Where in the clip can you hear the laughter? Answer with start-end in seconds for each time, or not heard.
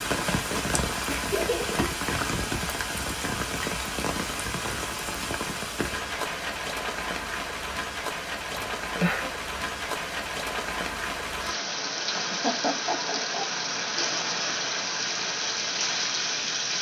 1.1-1.9, 8.6-9.3, 12.2-13.6.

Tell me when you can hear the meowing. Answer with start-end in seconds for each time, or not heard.
not heard.